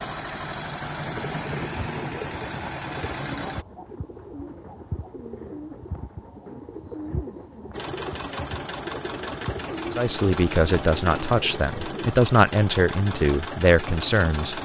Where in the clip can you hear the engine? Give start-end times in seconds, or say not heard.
0.0-3.6, 7.7-14.5.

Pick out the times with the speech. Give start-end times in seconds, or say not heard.
9.9-14.5.